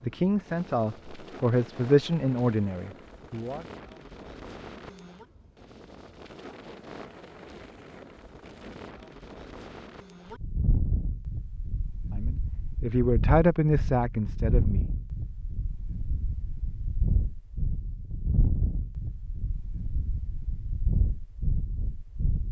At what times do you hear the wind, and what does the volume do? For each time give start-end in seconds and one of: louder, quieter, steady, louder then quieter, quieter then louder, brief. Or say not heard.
0.0-22.4 louder.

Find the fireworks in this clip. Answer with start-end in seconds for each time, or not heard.
not heard.